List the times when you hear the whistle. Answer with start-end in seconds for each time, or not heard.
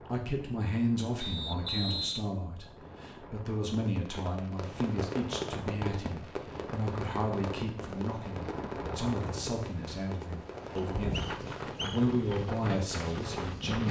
1.2-2.2, 10.8-12.2.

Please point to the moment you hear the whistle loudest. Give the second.
2 s.